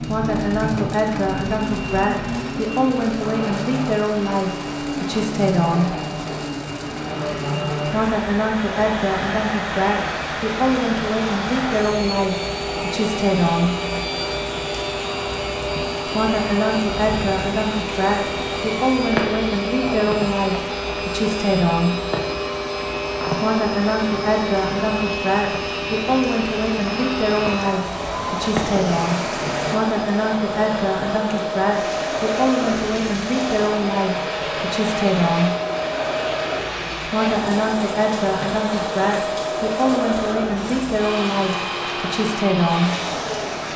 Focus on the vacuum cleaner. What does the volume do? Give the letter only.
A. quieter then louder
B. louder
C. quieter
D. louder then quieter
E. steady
E.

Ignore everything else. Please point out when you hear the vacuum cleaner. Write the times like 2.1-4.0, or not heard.
0.0-43.7.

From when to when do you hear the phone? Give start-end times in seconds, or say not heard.
not heard.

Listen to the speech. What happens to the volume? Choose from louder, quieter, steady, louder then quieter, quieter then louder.
steady.